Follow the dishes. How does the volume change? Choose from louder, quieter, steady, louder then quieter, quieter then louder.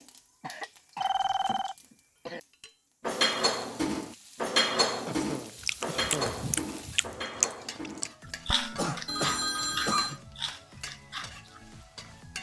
quieter.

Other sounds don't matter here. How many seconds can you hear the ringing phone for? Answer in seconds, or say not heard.
2 s.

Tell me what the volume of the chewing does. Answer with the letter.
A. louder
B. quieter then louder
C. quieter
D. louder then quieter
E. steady
D.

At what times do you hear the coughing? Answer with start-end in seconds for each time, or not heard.
0.4-2.4, 5.0-6.5, 8.8-10.2.